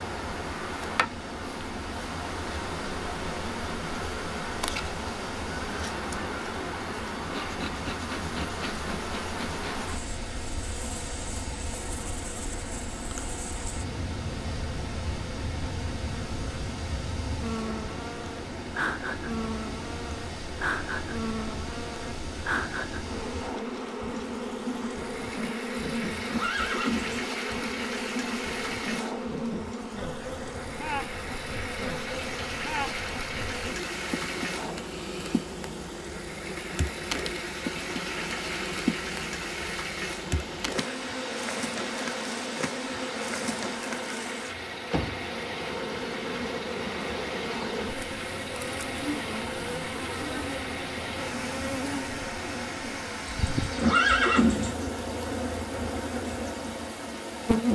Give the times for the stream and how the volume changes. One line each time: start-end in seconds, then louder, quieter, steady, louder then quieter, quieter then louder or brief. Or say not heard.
0.0-57.7 steady.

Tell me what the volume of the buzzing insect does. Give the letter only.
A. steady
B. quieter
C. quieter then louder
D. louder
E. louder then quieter
A.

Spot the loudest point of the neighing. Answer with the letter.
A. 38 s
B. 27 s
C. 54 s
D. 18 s
C.